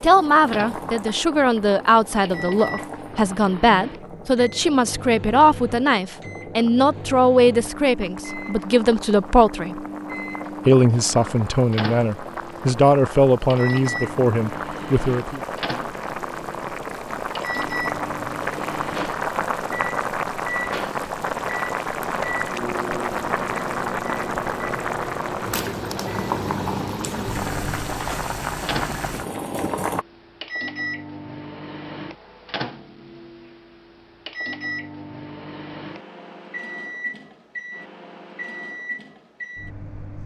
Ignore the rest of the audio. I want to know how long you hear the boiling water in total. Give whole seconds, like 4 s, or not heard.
30 s.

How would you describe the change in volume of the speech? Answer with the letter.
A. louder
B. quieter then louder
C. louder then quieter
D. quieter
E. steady
E.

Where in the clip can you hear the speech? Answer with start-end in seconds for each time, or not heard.
0.0-9.8, 10.7-15.4.